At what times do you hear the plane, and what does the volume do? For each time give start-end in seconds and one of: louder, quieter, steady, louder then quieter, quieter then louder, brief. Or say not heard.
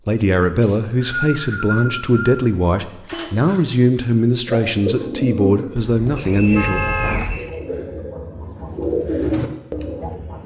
not heard.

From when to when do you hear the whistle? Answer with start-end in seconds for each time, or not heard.
0.6-2.5, 6.2-7.6.